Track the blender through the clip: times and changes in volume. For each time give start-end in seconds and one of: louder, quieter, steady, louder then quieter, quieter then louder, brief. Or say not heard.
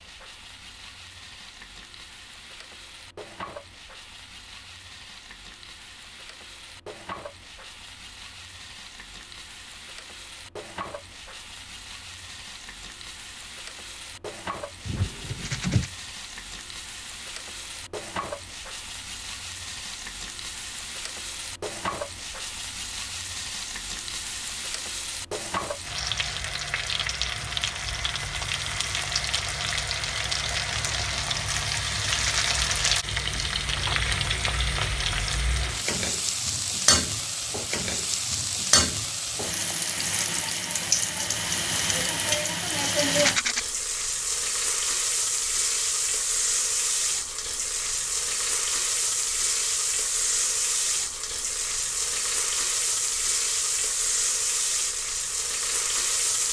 not heard.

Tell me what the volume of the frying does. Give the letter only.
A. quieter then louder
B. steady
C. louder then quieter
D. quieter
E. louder
E.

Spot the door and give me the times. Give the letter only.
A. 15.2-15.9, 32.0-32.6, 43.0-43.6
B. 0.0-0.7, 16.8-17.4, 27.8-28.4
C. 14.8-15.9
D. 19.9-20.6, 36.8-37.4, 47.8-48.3
C.